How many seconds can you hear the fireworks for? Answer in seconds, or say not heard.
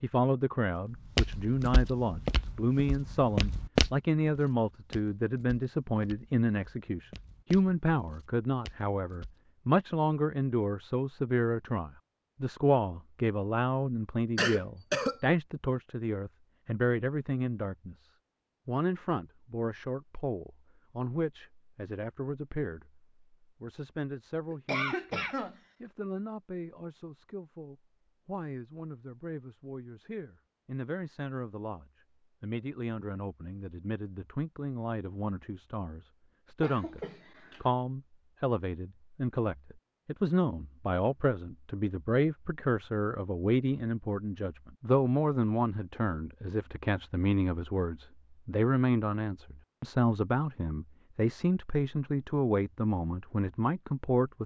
not heard.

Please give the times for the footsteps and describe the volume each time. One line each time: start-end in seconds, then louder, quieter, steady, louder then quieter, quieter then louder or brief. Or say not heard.
0.9-9.4 louder then quieter.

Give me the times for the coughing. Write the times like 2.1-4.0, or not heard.
14.3-15.2, 24.5-25.6, 36.6-37.6.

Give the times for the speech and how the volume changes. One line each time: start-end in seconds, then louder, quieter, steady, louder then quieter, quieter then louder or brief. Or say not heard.
0.0-54.4 quieter then louder.